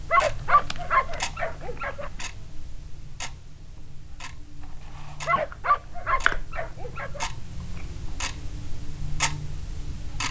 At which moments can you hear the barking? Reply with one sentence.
The barking can be heard from 0.1 to 2.1 s and from 5.2 to 7.2 s.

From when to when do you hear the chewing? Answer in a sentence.
The chewing can be heard from 0.3 to 2.2 s and from 5.4 to 8.1 s.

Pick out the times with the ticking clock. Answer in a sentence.
You can hear the ticking clock from 0.0 to 10.2 s.